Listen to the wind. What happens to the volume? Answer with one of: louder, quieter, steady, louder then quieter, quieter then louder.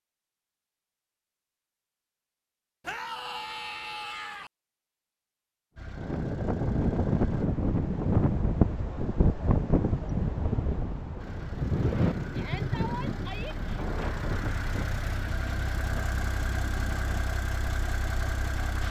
quieter.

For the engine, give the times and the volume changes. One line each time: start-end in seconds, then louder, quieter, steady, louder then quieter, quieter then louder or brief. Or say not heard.
5.8-7.5 brief
11.2-18.8 louder.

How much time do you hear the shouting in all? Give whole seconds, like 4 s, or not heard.
3 s.